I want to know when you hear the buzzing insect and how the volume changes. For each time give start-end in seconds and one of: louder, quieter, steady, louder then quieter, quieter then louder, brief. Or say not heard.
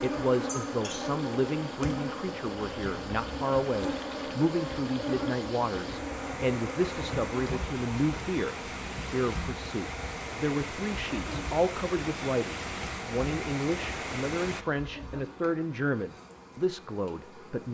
0.0-17.7 quieter.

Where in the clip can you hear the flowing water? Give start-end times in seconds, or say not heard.
0.0-14.7.